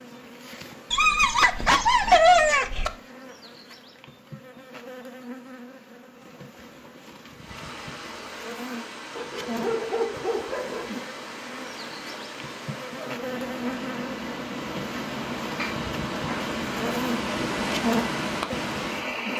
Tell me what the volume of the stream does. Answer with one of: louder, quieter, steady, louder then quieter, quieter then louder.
louder.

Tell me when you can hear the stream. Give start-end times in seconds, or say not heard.
7.3-19.3.